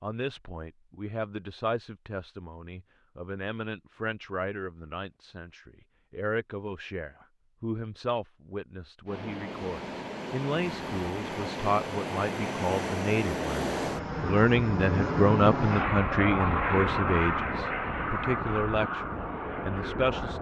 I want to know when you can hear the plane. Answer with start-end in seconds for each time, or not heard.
9.1-20.3.